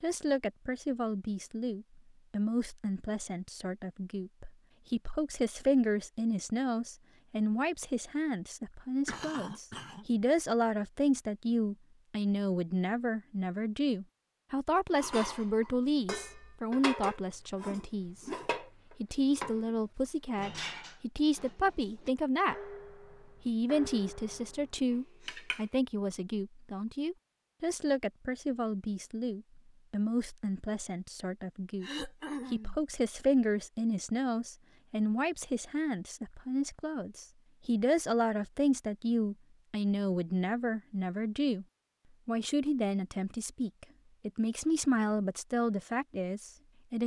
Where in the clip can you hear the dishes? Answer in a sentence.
The dishes can be heard from 14.9 to 19.8 s and from 20.4 to 25.6 s.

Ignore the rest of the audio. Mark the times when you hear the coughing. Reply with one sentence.
The coughing can be heard from 9.1 to 10.1 s and from 31.8 to 32.8 s.